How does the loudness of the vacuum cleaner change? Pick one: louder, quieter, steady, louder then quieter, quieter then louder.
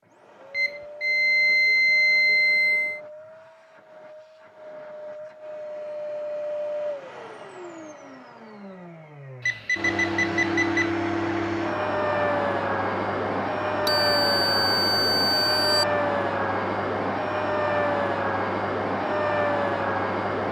louder.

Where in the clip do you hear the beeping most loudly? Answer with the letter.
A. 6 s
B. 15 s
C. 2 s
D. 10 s
C.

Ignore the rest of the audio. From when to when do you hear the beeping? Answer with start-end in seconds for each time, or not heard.
0.5-3.0, 9.4-10.9, 13.8-15.8.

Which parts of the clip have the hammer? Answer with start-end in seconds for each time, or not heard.
not heard.